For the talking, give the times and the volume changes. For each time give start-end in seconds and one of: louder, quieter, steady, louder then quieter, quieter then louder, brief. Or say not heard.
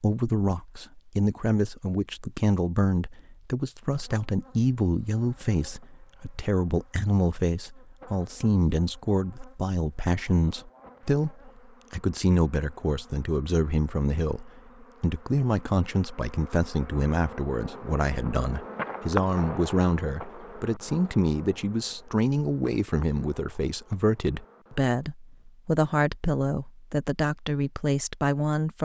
0.0-28.8 steady.